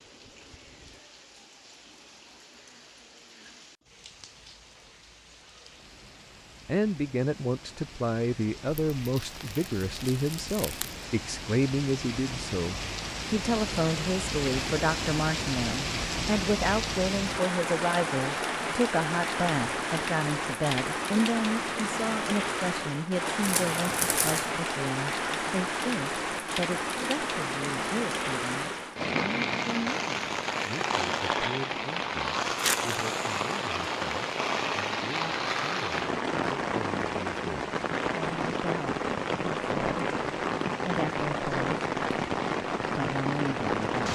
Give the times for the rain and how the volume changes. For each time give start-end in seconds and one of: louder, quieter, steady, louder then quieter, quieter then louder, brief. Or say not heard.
0.0-44.1 louder.